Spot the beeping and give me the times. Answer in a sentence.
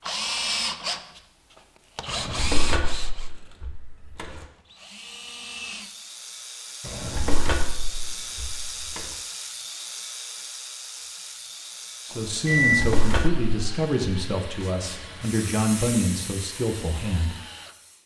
You can hear the beeping from 12.1 to 12.8 s.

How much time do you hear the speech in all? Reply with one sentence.
The speech can be heard for 5 seconds in total.